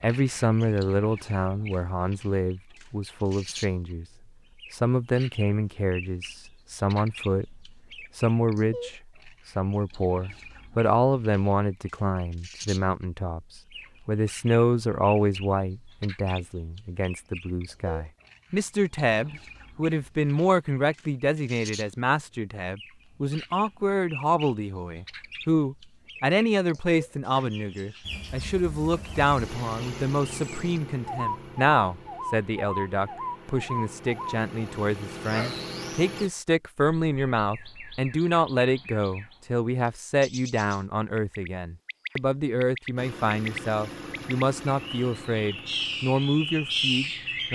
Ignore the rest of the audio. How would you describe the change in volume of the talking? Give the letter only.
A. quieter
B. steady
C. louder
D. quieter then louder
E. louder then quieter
B.